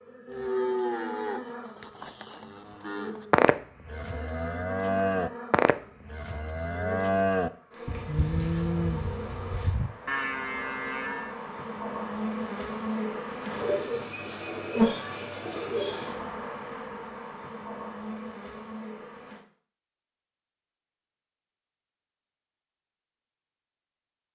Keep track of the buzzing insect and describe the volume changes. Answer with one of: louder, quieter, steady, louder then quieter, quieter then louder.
louder then quieter.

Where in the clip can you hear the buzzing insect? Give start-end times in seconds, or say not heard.
0.0-19.4.